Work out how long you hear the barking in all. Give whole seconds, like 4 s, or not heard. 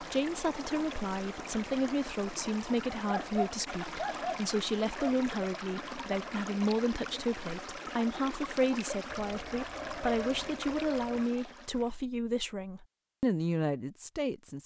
4 s.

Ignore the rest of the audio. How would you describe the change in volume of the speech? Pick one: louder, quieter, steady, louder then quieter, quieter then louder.
steady.